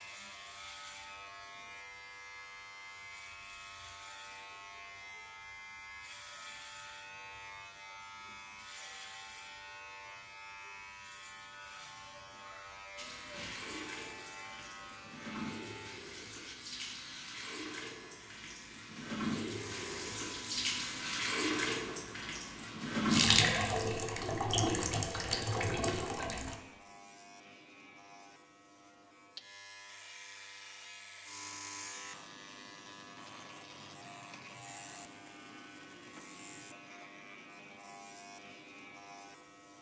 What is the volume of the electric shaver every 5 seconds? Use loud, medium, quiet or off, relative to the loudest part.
loud, loud, loud, loud, loud, medium, loud, loud.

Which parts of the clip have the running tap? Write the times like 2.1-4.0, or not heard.
12.9-26.6.